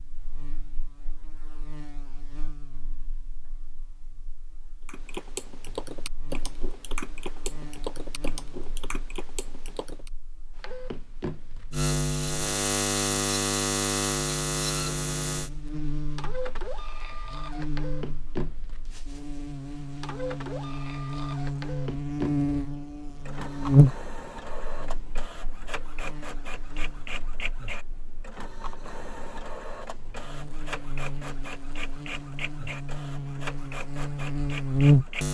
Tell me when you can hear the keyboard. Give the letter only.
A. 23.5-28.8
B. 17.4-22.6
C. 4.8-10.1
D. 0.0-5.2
C.